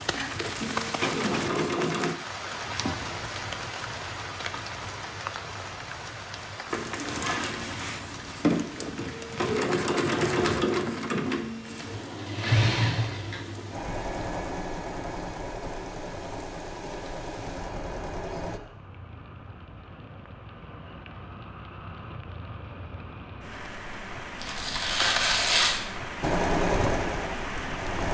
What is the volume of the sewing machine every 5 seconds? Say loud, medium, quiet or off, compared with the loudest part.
loud, loud, loud, medium, off, loud.